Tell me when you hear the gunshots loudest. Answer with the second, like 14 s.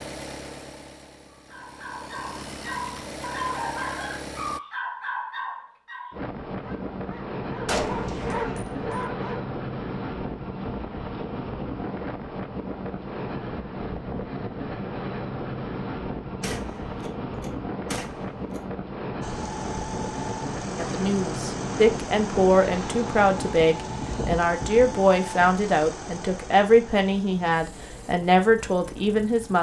8 s.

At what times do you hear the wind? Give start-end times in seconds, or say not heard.
6.1-29.5.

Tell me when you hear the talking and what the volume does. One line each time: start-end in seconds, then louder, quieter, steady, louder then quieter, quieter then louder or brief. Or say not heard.
20.8-29.5 steady.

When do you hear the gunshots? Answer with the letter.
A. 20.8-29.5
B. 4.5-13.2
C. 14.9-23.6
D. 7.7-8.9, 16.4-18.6
D.